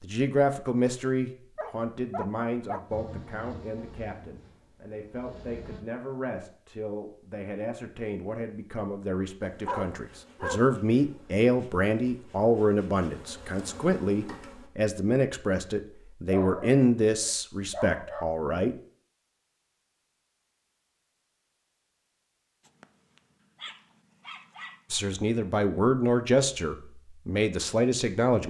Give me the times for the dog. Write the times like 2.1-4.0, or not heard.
1.6-2.9, 9.7-10.8, 16.2-18.2, 22.6-24.8.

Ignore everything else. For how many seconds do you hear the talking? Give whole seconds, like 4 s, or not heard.
22 s.